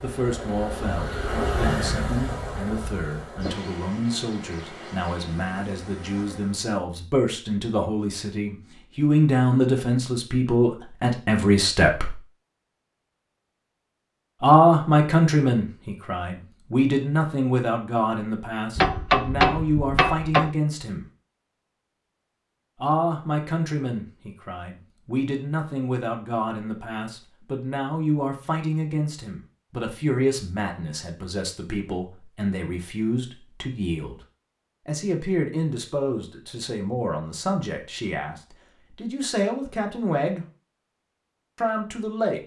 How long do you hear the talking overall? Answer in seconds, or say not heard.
37 s.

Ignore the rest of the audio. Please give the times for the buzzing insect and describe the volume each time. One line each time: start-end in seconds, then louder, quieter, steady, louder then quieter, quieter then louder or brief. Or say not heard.
0.0-6.7 quieter.